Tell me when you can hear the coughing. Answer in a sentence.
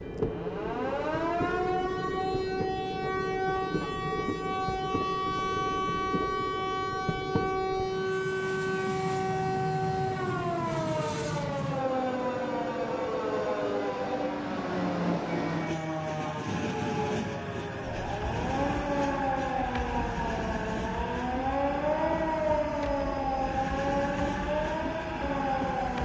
You can't hear the coughing here.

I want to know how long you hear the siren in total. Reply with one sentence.
You can hear the siren for 26 seconds altogether.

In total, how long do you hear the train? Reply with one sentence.
The train can be heard for 26 seconds in total.